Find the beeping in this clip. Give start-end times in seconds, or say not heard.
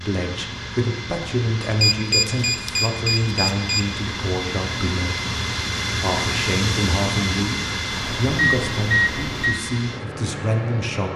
1.6-3.9, 7.9-9.6.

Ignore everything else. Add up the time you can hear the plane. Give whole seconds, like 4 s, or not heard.
11 s.